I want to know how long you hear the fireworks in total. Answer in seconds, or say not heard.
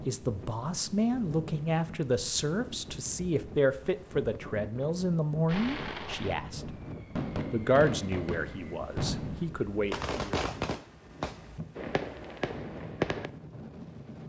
8 s.